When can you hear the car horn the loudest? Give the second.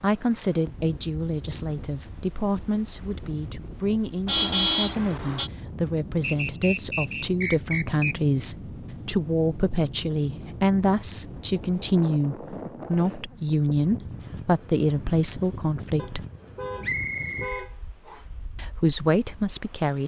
5 s.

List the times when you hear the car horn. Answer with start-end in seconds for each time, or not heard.
4.2-5.5, 15.9-17.8.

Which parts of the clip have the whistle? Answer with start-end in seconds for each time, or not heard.
6.2-8.2, 16.8-18.2.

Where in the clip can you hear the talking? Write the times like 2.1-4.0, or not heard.
0.0-16.2, 18.6-20.0.